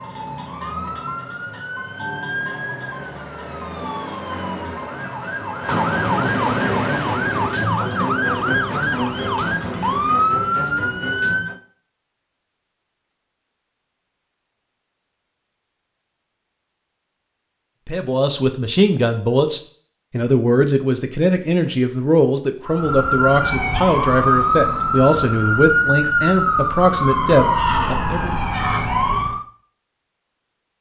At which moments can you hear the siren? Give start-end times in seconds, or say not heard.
0.0-11.6, 22.6-29.4.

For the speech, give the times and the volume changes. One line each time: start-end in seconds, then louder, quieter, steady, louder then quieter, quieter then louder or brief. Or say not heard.
17.9-28.3 steady.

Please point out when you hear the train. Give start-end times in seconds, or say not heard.
not heard.